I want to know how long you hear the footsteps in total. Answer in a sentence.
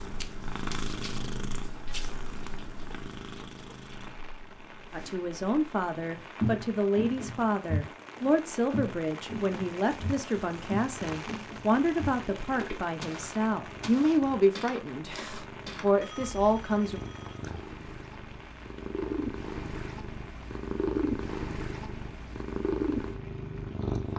The footsteps can be heard for 10 seconds in total.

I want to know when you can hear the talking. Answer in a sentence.
The talking can be heard from 4.9 to 17.0 s.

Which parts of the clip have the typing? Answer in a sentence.
You can't hear the typing here.